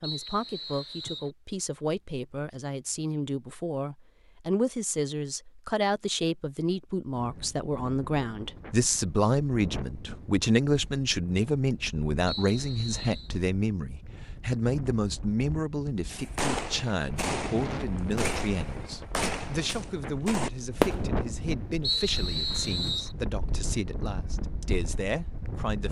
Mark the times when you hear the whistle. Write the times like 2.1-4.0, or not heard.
0.0-1.3, 12.2-13.3, 21.8-23.1.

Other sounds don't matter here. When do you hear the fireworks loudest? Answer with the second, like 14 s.
21 s.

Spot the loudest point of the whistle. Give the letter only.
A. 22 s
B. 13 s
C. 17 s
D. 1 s
A.